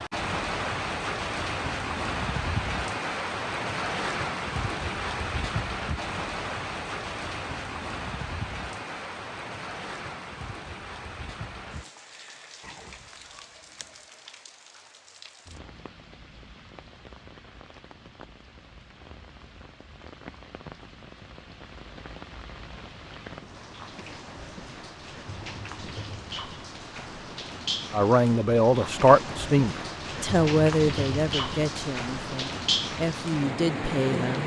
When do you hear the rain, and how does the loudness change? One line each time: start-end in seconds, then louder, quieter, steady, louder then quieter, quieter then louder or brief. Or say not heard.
0.0-34.4 quieter then louder.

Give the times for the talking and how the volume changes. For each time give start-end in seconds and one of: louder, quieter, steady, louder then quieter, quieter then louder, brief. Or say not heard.
27.9-34.4 quieter then louder.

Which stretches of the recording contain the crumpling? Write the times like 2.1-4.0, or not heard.
12.6-14.2.